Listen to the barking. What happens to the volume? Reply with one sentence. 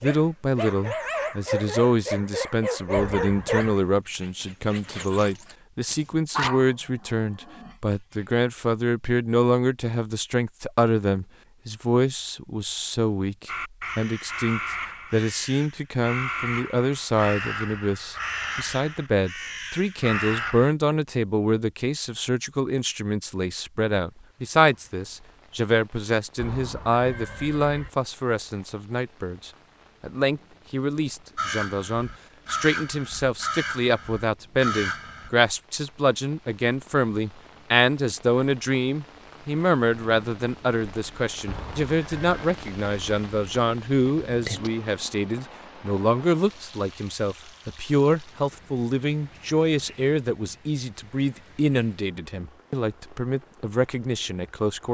The loudness of the barking goes down, then up.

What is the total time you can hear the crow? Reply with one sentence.
The crow can be heard for 11 seconds in total.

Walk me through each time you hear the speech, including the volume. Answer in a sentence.
You can hear the speech from 0.0 to 54.8 s, at a steady volume.